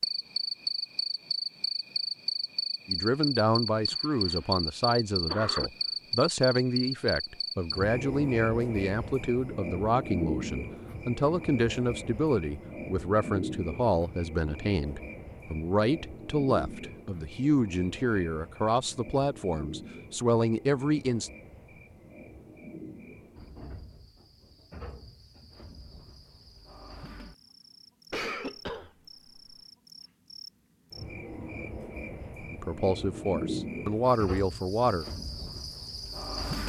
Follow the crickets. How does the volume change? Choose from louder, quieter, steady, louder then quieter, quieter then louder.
quieter then louder.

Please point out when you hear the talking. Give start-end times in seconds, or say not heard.
2.9-21.3, 32.5-35.0.